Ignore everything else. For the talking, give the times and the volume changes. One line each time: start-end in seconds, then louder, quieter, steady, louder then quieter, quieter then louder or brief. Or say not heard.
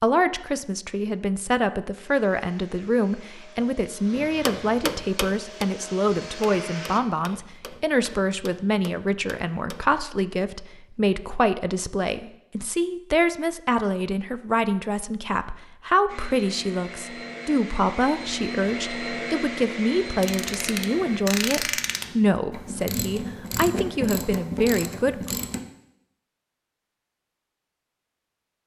0.0-25.4 steady.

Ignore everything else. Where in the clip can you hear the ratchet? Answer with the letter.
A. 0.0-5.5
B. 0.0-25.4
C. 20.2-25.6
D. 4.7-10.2
C.